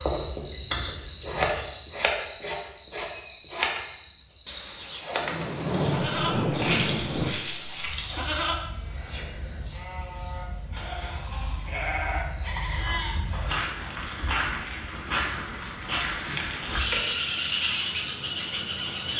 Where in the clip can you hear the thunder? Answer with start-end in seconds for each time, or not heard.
4.5-7.3.